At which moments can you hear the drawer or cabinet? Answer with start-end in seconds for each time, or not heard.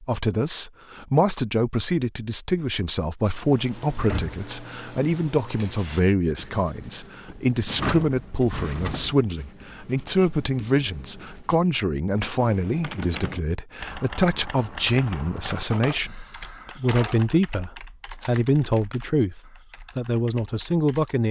4.0-4.4, 7.7-9.2, 15.5-17.4.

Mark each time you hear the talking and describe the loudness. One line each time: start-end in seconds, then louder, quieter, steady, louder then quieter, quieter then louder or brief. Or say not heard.
0.0-21.2 steady.